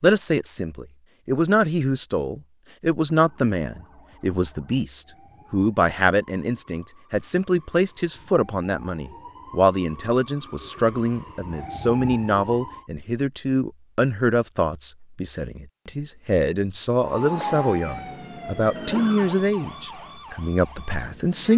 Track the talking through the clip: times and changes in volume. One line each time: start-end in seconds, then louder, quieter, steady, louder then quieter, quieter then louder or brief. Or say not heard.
0.0-21.5 steady.